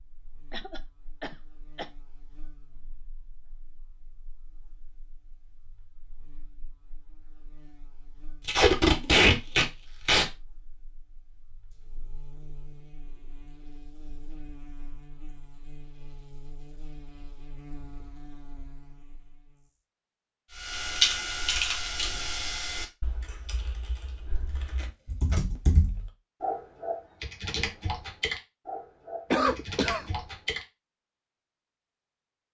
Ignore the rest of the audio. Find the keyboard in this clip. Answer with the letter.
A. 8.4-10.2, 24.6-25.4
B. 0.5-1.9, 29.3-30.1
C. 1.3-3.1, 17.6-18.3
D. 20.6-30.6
D.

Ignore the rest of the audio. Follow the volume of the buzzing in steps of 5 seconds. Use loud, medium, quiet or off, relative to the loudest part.
quiet, quiet, loud, loud, off, off, off.